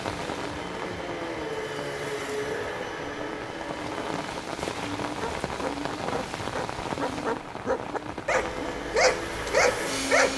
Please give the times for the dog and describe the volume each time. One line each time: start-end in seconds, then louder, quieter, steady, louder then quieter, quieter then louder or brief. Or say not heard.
5.2-10.3 louder.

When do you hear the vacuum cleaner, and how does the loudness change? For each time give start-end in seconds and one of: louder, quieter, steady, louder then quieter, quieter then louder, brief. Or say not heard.
0.0-4.3 louder then quieter
8.2-10.3 brief.